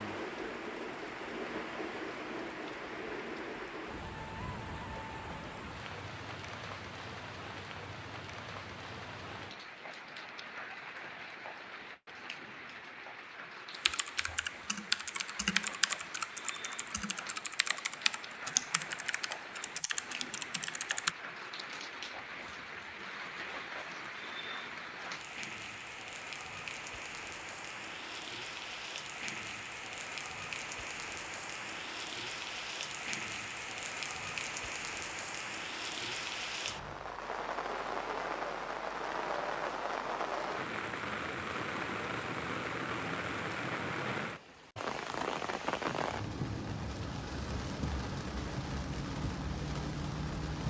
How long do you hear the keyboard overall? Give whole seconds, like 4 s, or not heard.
7 s.